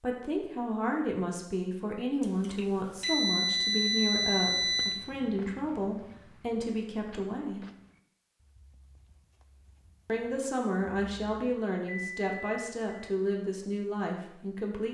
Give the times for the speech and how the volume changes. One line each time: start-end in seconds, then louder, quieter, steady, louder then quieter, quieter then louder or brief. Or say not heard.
0.0-7.7 steady
10.1-14.8 steady.